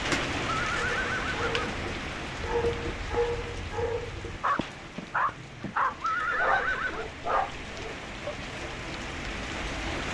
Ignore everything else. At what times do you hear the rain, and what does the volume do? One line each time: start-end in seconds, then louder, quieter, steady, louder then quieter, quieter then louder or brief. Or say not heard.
0.0-10.0 quieter then louder.